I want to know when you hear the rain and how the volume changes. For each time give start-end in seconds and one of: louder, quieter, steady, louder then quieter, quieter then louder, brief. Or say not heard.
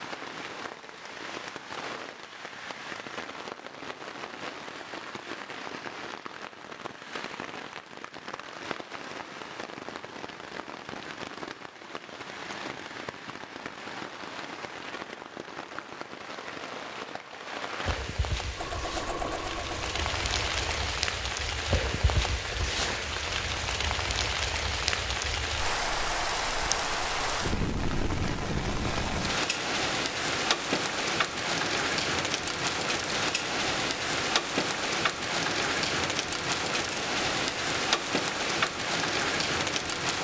0.0-40.2 louder.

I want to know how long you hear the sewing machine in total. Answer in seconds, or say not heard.
2 s.